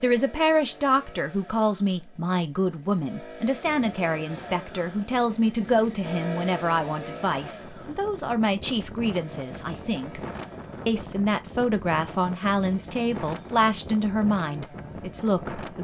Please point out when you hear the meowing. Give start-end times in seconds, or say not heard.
not heard.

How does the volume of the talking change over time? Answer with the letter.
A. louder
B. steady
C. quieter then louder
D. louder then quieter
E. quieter
B.